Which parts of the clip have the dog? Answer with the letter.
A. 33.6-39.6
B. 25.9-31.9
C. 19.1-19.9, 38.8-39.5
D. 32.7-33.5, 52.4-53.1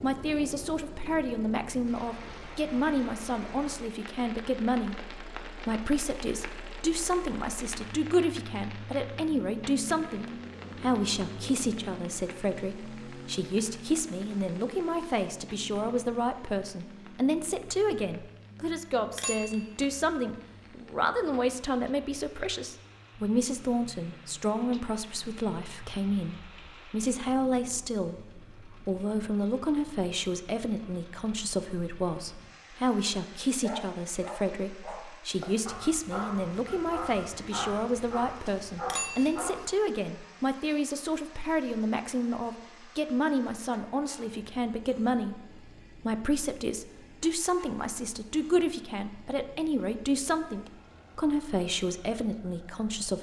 A.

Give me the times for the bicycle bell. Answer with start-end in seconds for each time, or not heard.
19.1-19.9, 38.8-39.5.